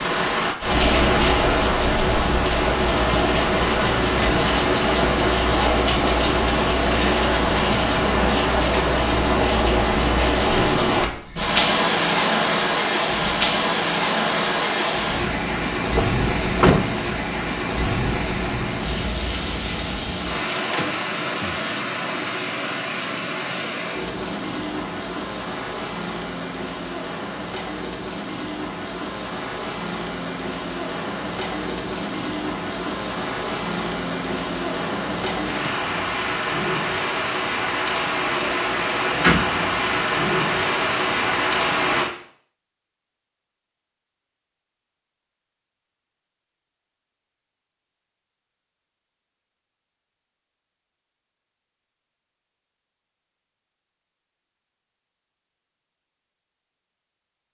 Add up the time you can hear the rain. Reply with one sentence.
You can hear the rain for 42 seconds altogether.